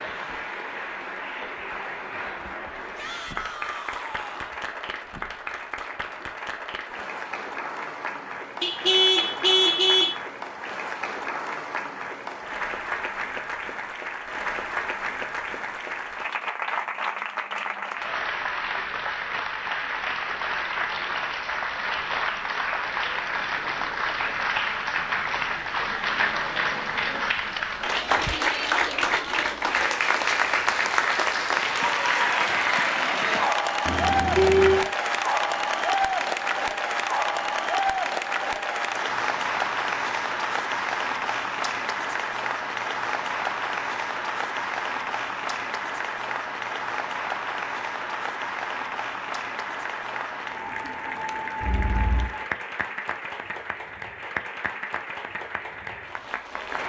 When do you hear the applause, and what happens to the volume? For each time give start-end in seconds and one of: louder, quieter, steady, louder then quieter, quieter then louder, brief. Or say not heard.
0.0-56.8 louder then quieter.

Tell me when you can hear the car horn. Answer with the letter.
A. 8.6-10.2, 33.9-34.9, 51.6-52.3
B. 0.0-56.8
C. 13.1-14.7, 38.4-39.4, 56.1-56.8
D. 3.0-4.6
A.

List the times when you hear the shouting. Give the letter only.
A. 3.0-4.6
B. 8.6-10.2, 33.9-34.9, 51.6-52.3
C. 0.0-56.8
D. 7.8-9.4
A.